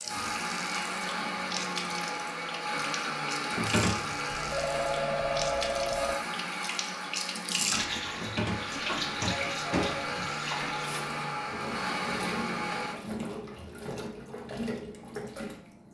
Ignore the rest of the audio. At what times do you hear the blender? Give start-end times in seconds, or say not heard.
0.0-13.0.